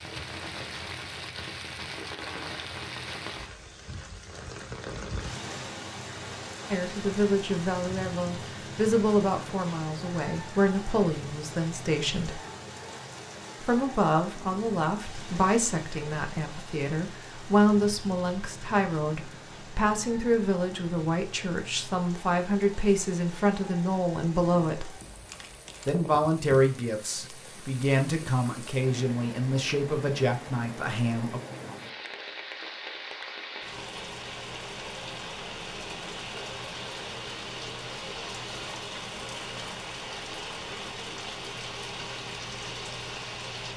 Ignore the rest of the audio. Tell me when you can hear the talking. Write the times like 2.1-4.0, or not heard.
6.7-12.4, 13.6-24.9, 25.9-31.4.